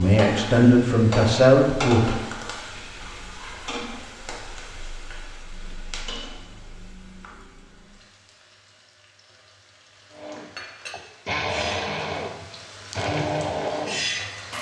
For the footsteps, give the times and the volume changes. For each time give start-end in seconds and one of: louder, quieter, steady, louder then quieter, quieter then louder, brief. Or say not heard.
not heard.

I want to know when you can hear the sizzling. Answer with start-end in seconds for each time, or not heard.
0.0-14.5.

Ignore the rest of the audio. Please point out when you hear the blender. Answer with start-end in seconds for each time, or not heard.
10.1-14.5.